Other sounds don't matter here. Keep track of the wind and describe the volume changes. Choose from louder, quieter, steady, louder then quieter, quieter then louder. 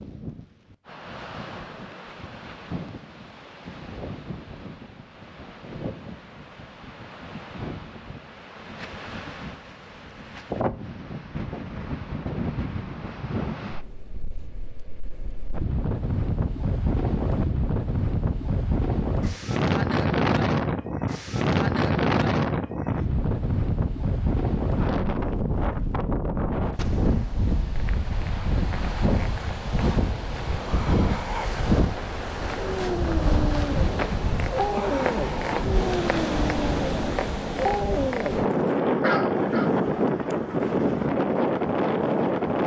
louder.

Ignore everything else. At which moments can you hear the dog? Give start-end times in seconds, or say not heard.
32.6-39.8.